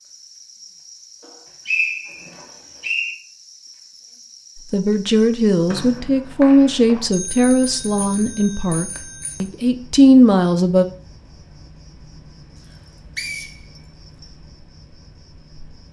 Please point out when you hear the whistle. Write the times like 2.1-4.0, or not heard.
1.6-3.1, 5.7-7.0, 12.7-14.2.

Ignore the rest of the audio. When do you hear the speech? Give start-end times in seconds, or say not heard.
4.7-10.8.